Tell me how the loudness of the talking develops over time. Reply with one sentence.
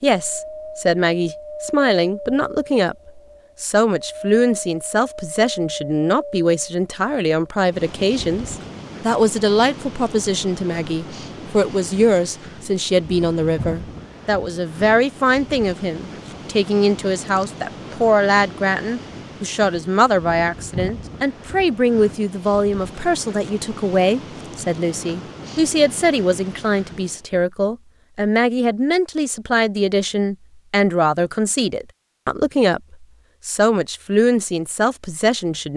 The volume of the talking stays about the same.